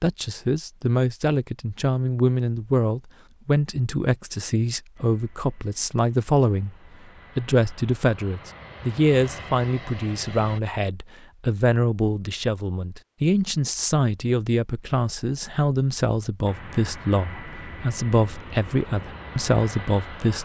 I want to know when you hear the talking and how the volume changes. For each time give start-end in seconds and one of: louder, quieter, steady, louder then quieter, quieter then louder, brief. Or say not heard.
0.0-6.8 steady
7.3-20.4 steady.